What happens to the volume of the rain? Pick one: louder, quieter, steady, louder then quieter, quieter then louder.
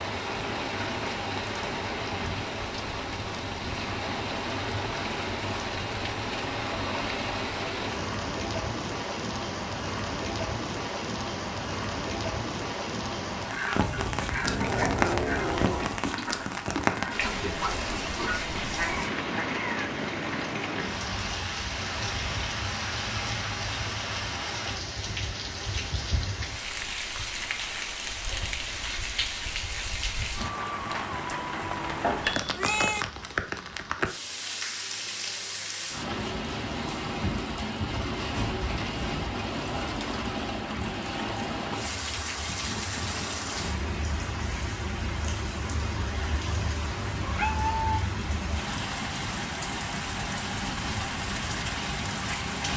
steady.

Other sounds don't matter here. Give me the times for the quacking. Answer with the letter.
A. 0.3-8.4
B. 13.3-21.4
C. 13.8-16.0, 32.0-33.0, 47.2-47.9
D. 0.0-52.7
B.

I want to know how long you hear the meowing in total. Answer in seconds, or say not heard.
4 s.